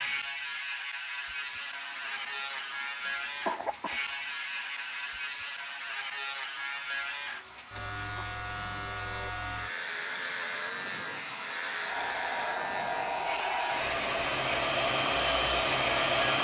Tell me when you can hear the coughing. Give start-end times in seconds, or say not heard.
3.5-4.3.